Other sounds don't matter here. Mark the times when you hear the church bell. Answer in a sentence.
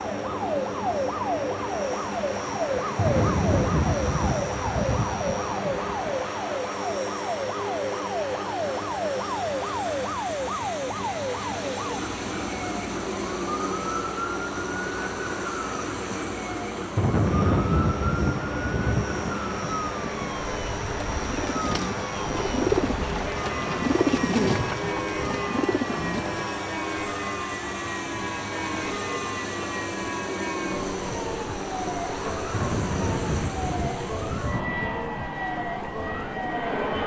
You can't hear the church bell here.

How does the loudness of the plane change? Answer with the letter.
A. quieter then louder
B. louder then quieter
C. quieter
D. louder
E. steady
E.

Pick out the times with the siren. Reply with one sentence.
You can hear the siren from 0.0 to 37.0 s.